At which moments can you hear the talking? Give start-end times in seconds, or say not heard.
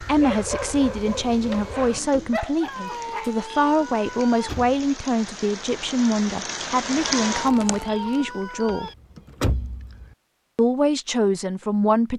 0.0-8.9, 10.6-12.1.